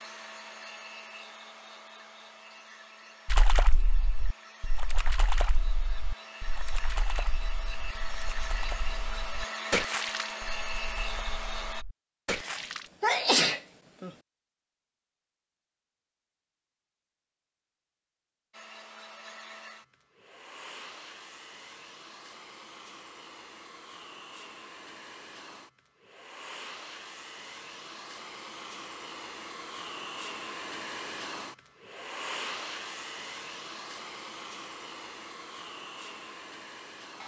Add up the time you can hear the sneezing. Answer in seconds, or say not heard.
2 s.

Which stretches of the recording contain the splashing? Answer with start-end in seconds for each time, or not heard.
3.2-12.9.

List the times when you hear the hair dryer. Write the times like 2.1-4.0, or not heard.
0.0-11.8, 18.5-37.2.